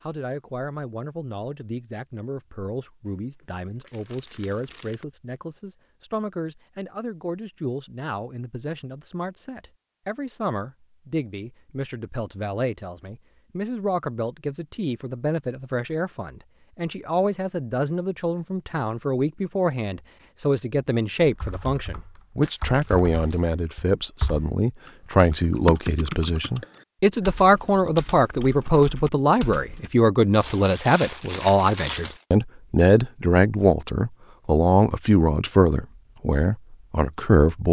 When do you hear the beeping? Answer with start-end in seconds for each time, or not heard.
not heard.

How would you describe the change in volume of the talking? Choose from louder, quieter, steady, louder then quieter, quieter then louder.
louder.